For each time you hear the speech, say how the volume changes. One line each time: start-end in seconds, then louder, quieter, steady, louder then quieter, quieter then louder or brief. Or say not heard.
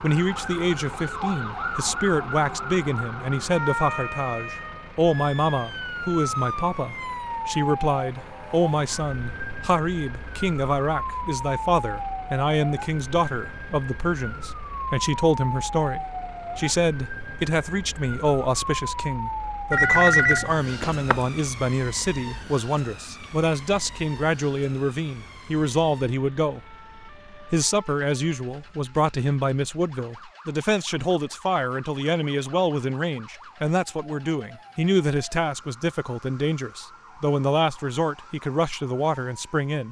0.0-39.8 steady.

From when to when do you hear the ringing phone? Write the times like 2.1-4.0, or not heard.
19.7-21.2.